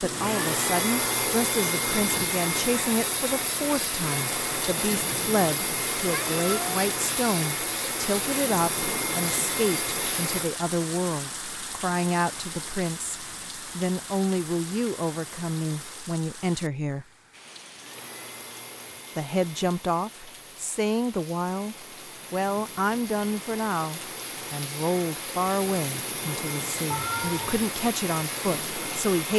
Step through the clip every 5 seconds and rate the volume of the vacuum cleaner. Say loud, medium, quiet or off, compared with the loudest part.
loud, loud, medium, quiet, quiet, medium.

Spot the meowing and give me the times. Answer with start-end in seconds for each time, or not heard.
6.1-6.7, 26.9-27.6.